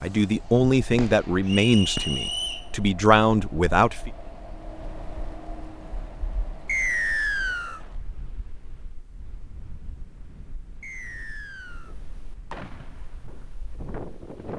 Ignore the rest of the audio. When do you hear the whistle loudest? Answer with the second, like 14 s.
7 s.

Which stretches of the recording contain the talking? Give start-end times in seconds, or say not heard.
0.0-4.1.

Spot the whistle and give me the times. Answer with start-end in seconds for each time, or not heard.
1.4-2.6, 6.7-7.8, 10.8-11.9.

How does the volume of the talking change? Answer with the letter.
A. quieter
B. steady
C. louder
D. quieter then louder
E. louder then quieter
D.